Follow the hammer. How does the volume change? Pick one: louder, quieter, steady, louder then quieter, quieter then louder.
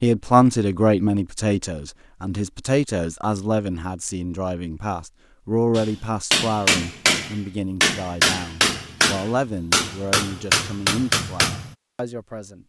steady.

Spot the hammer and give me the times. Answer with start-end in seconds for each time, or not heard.
5.8-11.8.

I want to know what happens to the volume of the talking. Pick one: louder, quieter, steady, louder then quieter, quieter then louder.
quieter.